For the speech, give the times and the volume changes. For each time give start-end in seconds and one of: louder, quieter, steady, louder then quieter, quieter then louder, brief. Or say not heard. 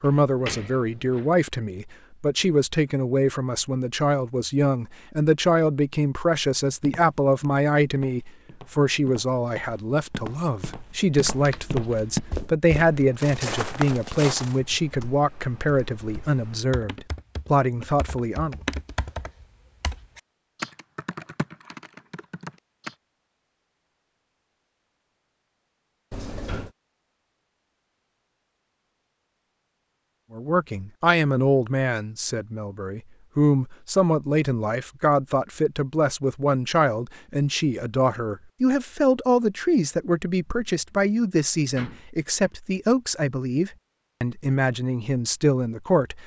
0.0-18.6 steady
30.3-46.2 steady.